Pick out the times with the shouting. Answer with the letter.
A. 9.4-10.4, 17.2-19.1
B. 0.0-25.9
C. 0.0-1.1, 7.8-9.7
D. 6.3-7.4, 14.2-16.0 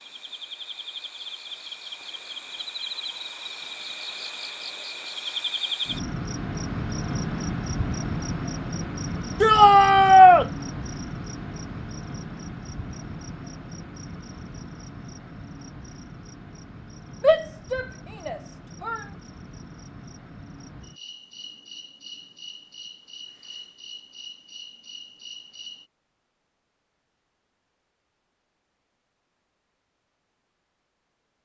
A.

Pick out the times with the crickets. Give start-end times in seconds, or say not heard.
0.0-25.9.